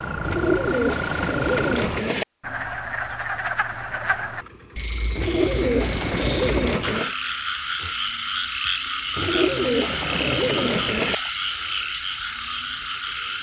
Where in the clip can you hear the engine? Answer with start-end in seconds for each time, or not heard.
3.7-7.0.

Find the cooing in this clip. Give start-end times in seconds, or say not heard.
0.2-2.2, 5.2-7.2, 9.2-11.2.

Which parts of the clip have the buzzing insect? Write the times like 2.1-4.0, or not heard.
not heard.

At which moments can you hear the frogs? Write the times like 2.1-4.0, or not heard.
0.0-13.3.